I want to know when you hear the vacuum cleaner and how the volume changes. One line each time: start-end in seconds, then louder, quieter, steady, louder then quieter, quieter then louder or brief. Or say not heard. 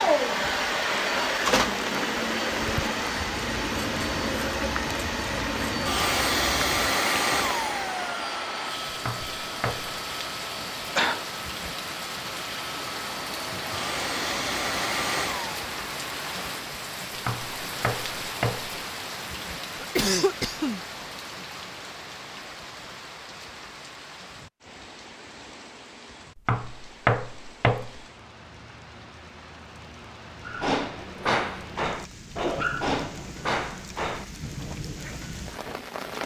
0.0-15.7 quieter then louder.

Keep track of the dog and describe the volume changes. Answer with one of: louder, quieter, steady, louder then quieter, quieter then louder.
quieter.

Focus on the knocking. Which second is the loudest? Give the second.
27 s.